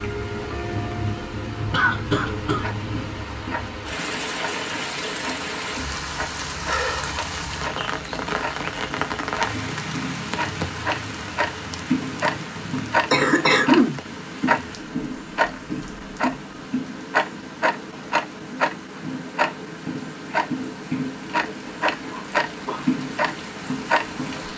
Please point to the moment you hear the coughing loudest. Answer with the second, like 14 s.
14 s.